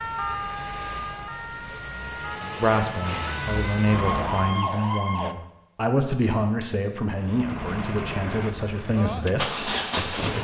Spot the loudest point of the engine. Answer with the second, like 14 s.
10 s.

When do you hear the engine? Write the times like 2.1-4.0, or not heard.
0.0-4.7, 7.2-10.3.